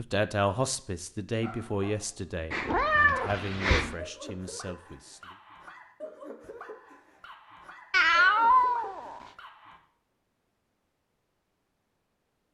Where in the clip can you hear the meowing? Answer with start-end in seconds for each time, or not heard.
2.5-4.0, 7.9-9.2.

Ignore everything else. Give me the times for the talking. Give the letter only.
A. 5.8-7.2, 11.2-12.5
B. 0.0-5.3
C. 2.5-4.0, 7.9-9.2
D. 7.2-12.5
B.